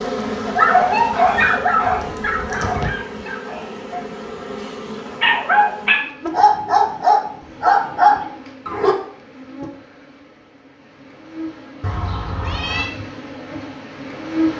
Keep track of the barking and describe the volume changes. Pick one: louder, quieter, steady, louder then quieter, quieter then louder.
quieter then louder.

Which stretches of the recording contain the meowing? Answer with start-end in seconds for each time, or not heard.
1.9-2.9, 11.8-12.9.